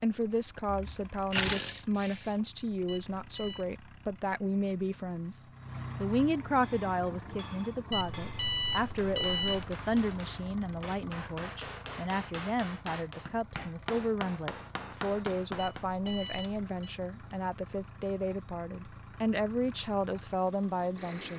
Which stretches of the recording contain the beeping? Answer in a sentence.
The beeping can be heard from 2.9 to 3.6 s, from 7.9 to 9.8 s and from 15.6 to 16.9 s.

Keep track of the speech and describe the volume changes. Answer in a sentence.
The volume of the speech stays about the same.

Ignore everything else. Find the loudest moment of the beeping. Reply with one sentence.
The loudest moment of the beeping is at 9 seconds.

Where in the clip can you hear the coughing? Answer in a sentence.
The coughing can't be heard in this clip.